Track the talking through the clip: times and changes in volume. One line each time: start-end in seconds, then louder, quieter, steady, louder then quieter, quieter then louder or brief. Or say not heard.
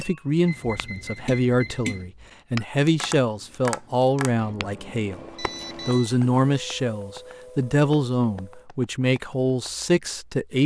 0.0-10.6 steady.